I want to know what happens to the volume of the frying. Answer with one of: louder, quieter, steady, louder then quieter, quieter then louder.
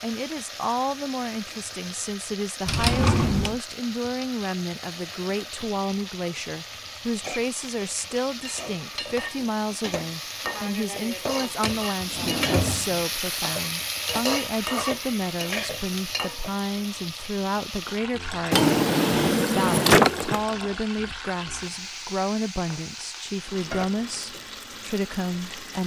louder then quieter.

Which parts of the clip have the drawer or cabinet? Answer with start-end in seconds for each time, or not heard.
2.6-3.5, 11.6-13.1, 18.5-20.4.